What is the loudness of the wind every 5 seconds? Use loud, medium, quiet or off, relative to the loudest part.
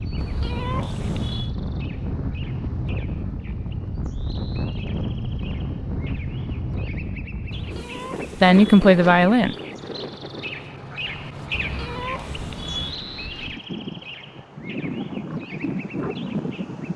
loud, loud, medium, loud.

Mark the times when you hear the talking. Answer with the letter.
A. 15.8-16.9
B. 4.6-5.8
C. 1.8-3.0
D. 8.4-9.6
D.